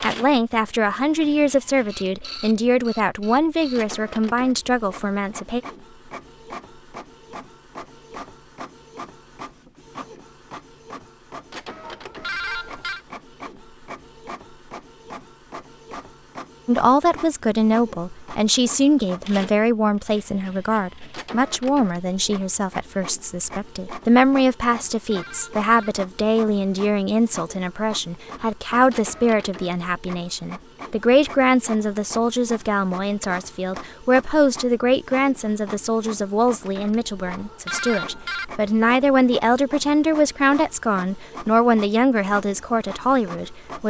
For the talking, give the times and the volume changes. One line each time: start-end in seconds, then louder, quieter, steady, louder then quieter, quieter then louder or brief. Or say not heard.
0.0-5.6 steady
16.6-43.8 steady.